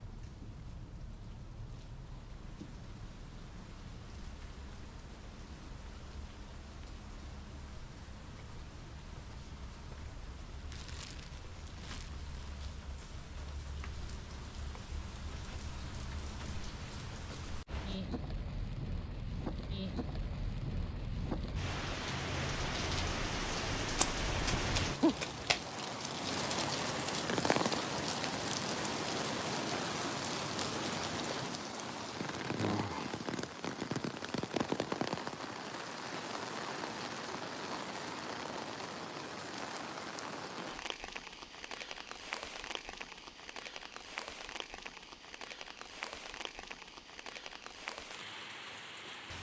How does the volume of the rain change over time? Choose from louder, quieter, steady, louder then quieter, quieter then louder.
louder then quieter.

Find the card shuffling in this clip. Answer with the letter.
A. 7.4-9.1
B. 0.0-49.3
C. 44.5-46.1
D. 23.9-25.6
D.